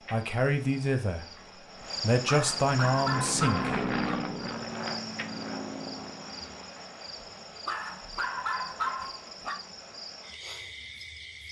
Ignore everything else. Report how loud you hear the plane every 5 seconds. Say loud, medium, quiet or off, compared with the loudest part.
loud, medium, off.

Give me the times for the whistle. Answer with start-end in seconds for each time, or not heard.
not heard.